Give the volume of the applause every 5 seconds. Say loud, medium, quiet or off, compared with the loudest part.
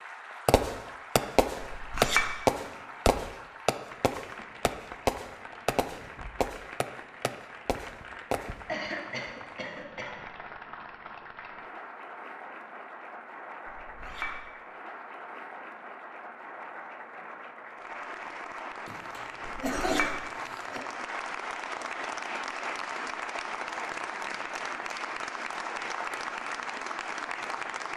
medium, medium, medium, medium, loud, loud.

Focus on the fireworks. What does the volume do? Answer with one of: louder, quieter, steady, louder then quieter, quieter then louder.
quieter.